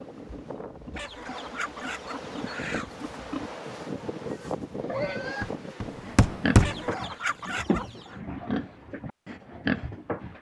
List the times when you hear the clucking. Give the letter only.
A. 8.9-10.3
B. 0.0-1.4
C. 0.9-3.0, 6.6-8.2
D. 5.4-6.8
C.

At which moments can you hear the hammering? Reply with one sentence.
You can hear the hammering from 5.4 to 6.8 s.